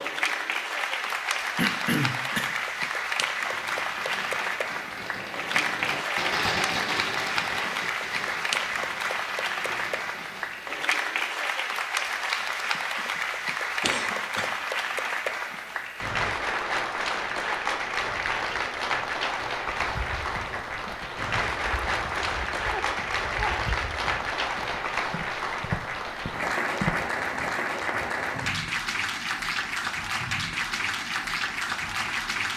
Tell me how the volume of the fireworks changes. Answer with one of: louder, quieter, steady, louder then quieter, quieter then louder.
louder then quieter.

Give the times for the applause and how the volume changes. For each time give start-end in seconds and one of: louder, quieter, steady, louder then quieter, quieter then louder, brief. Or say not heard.
0.0-32.5 steady.